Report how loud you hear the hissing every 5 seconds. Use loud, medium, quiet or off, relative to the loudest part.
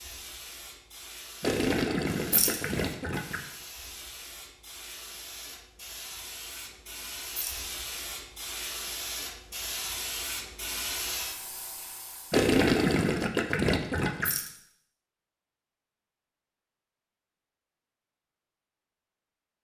medium, loud, loud, off.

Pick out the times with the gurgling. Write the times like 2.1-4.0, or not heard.
1.4-3.4, 12.3-14.3.